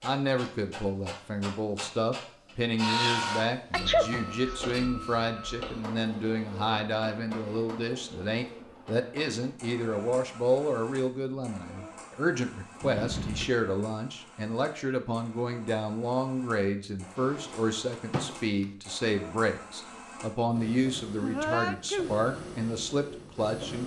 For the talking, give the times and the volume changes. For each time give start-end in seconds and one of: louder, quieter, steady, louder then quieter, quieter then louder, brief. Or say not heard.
0.0-23.8 steady.